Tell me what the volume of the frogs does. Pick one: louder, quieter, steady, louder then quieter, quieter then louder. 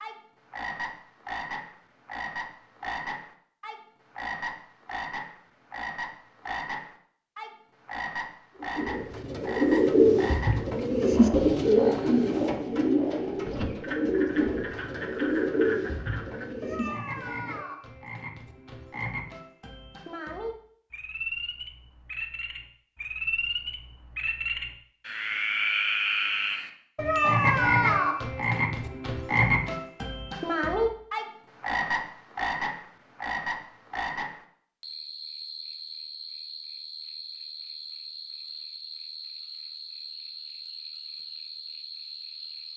louder then quieter.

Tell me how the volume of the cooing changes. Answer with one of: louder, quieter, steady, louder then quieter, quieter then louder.
quieter.